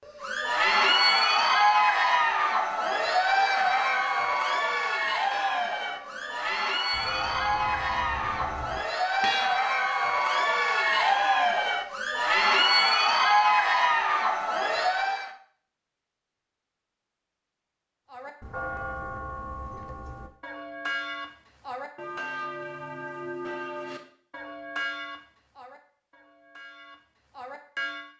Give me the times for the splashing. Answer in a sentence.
The splashing can't be heard in this clip.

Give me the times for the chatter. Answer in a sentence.
You can hear the chatter from 0.1 to 15.3 s.